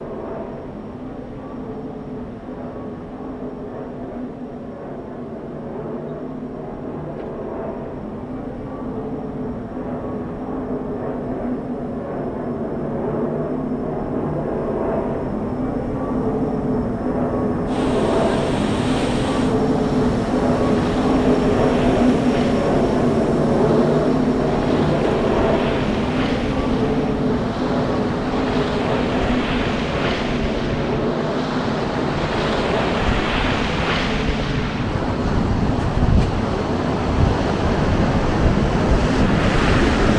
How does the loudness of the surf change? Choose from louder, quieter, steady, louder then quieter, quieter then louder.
louder.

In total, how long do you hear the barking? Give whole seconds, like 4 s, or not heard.
not heard.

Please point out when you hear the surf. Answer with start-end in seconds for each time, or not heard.
17.6-40.1.